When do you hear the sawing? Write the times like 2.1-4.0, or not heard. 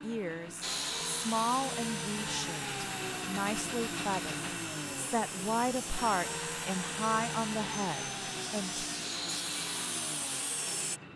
0.6-11.0.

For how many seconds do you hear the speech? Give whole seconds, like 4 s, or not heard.
9 s.